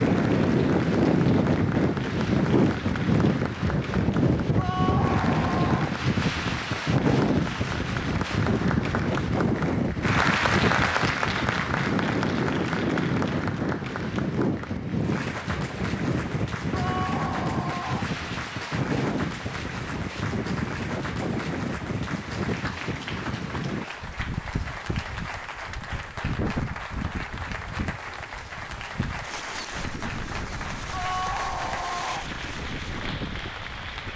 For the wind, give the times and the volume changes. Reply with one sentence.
The wind can be heard from 0.0 to 34.1 s, getting quieter.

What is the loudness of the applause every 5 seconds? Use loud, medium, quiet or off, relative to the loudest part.
medium, medium, loud, medium, medium, medium, medium.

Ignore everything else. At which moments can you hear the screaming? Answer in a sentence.
You can hear the screaming from 4.5 to 6.0 s, from 16.7 to 18.1 s and from 30.9 to 32.3 s.